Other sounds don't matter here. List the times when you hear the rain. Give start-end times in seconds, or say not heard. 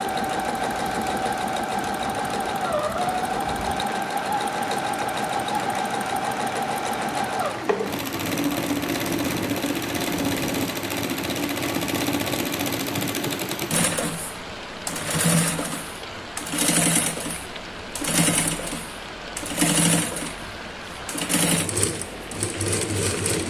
0.0-23.4.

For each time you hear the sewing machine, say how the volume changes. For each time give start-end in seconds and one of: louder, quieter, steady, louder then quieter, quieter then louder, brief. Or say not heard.
0.0-23.4 steady.